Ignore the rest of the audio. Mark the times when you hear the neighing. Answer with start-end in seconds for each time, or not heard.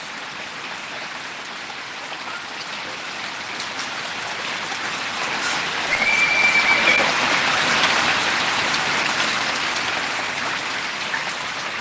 5.8-7.2.